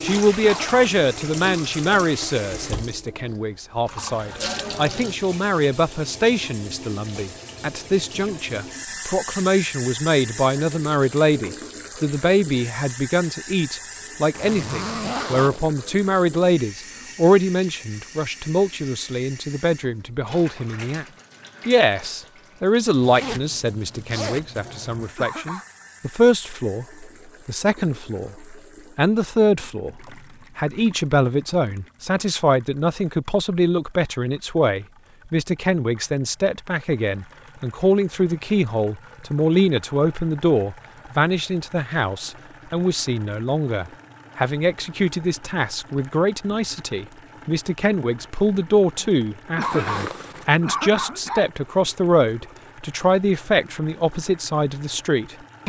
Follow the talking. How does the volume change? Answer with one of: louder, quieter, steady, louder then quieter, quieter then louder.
steady.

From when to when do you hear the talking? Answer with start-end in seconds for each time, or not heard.
0.0-21.1, 21.6-55.6.